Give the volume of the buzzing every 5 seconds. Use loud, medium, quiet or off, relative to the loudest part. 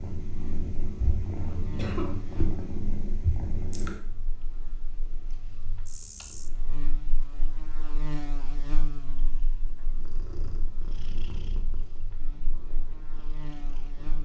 medium, loud, medium.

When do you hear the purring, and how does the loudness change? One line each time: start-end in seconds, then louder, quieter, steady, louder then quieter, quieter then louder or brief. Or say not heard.
0.0-14.2 quieter then louder.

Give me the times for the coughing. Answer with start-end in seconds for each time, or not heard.
1.5-2.2.